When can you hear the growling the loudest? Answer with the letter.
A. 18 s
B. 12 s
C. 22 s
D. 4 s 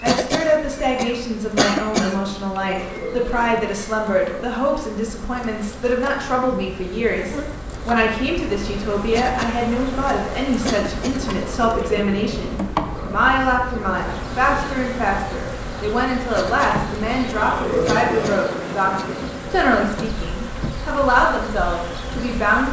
A.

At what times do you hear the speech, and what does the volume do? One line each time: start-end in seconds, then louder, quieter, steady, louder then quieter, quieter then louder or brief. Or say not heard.
0.0-22.6 steady.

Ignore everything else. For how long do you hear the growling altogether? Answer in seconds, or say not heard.
5 s.